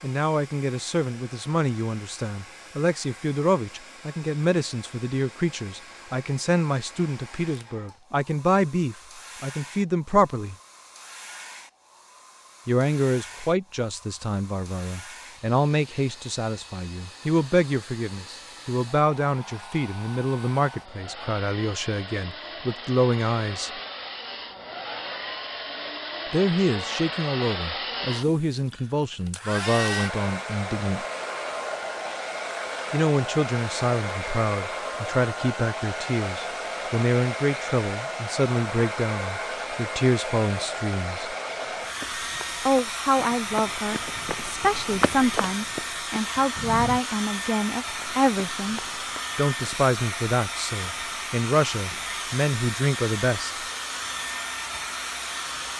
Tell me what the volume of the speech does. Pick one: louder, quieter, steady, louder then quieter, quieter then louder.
steady.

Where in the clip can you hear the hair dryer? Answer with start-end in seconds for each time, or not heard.
0.0-55.7.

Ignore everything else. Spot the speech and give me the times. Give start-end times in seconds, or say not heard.
0.0-10.6, 12.7-23.7, 26.3-31.1, 32.9-41.4, 42.6-53.6.